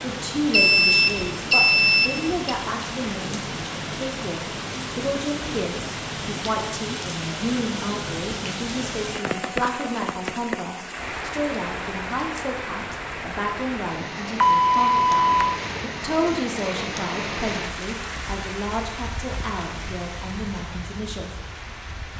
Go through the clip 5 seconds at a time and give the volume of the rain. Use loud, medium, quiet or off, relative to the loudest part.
loud, loud, loud, loud, medium.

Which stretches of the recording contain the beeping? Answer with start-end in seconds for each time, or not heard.
0.5-2.5, 14.4-16.4.